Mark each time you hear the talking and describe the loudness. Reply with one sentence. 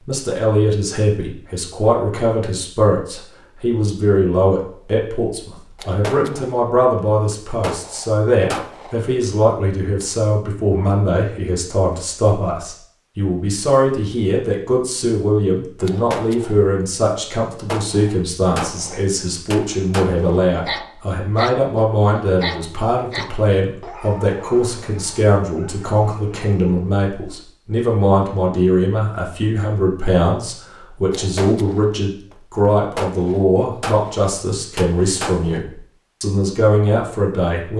You can hear the talking from 0.0 to 37.7 s, at a steady volume.